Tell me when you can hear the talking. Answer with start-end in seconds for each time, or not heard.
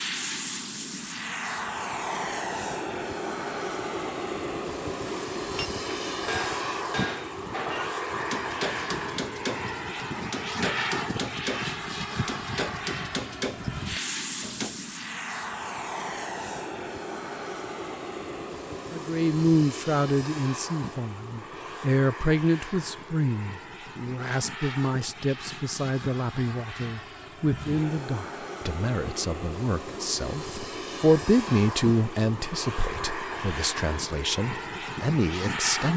18.9-35.9.